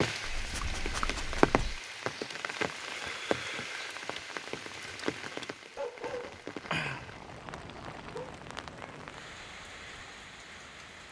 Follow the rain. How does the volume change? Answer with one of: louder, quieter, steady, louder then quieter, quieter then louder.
quieter.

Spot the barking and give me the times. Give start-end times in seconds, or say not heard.
0.2-1.8, 5.8-8.3.